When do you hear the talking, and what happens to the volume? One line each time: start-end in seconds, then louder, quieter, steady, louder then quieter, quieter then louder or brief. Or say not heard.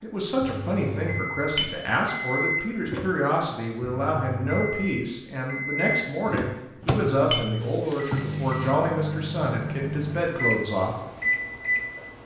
0.0-10.9 steady.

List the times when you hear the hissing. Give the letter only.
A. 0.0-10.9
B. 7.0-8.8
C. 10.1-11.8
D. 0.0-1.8
B.